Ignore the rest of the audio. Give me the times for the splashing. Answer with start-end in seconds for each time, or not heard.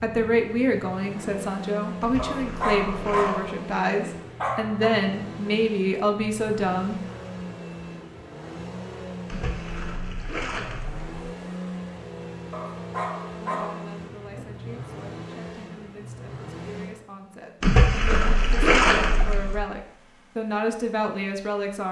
2.0-3.5, 9.2-11.1, 17.6-19.6.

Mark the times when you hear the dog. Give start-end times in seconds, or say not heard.
2.1-4.9, 12.5-14.5.